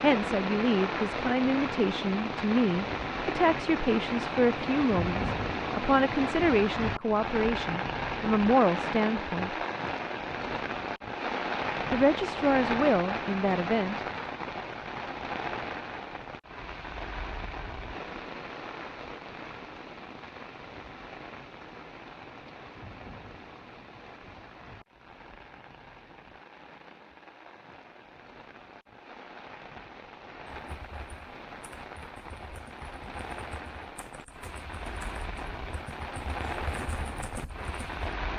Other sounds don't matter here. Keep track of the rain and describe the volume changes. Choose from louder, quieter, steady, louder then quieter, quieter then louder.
quieter then louder.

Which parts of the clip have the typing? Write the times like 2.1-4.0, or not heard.
30.6-38.0.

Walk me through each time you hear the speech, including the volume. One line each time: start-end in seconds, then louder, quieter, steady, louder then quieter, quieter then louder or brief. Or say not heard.
0.0-9.6 steady
11.9-14.0 brief.